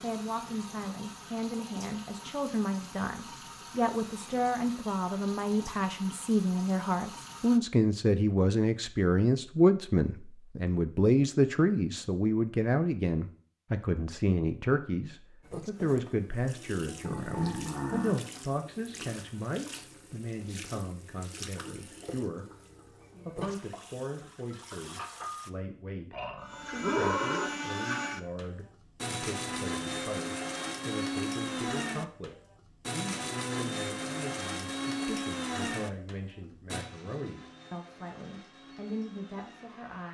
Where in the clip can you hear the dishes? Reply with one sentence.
The dishes can't be heard in this clip.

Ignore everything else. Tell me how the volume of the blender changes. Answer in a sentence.
The volume of the blender goes down.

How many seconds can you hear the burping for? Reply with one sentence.
The burping can be heard for 3 seconds in total.